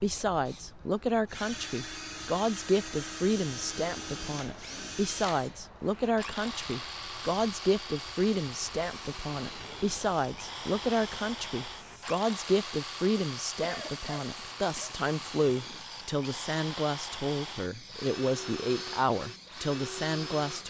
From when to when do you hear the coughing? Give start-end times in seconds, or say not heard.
13.6-14.9.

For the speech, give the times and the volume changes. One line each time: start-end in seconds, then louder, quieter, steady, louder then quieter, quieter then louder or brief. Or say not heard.
0.0-20.6 steady.